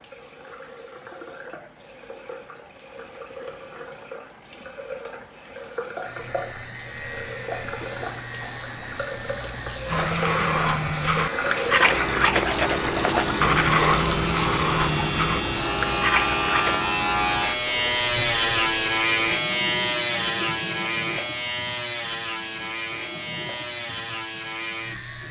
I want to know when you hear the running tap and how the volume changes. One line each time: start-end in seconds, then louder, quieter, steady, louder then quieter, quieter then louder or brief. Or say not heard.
0.0-25.2 louder then quieter.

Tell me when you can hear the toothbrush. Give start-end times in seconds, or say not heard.
9.9-16.8.